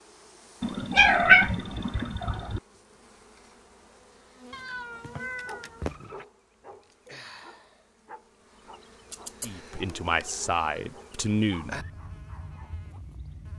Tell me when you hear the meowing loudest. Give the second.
1 s.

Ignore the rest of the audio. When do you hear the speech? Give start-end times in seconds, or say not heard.
9.4-11.8.